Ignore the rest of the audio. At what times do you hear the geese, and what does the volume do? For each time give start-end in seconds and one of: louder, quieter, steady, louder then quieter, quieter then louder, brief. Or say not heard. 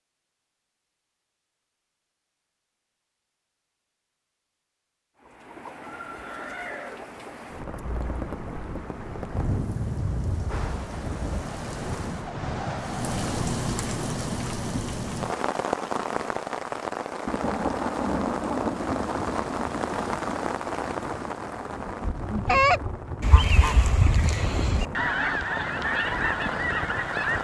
22.1-27.3 quieter.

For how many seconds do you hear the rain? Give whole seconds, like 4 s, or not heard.
22 s.